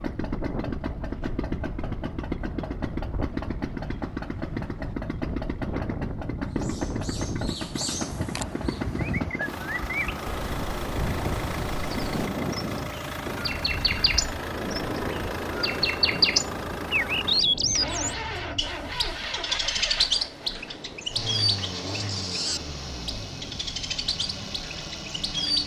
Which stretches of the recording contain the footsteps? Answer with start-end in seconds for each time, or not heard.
not heard.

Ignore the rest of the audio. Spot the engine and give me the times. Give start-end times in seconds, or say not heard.
0.0-25.6.